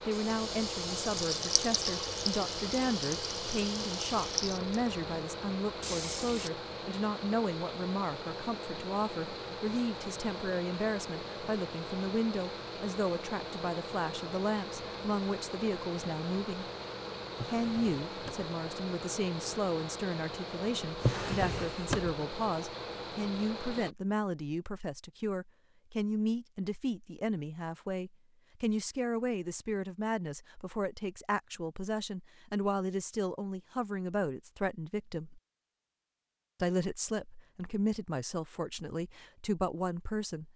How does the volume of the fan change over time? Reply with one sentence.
The volume of the fan stays about the same.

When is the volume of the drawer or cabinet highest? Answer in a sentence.
The loudest moment of the drawer or cabinet is at 21 seconds.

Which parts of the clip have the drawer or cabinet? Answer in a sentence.
You can hear the drawer or cabinet from 17.3 to 18.5 s and from 20.9 to 22.1 s.